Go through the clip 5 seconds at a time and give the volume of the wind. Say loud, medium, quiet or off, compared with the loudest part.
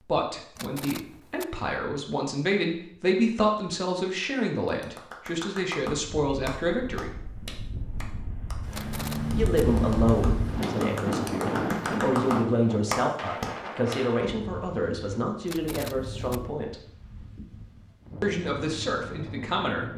off, loud, loud, medium.